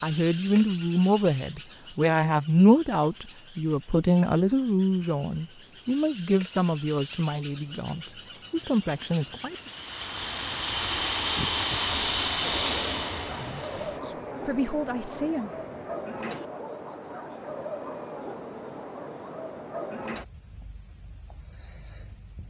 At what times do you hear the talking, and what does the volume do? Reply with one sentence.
You can hear the talking from 0.0 to 9.7 s, getting quieter; and briefly from 13.3 to 15.5 s.